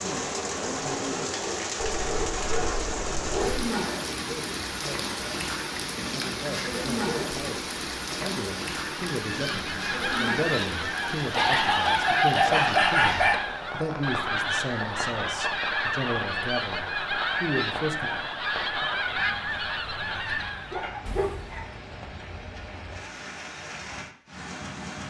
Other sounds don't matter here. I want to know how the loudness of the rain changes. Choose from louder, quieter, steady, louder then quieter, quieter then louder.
quieter.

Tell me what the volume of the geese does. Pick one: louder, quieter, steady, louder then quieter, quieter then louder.
steady.